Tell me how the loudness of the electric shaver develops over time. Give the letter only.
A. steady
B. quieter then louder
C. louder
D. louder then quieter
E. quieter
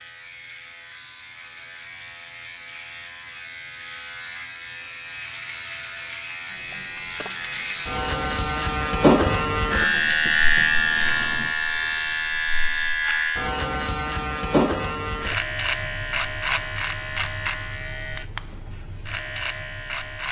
D.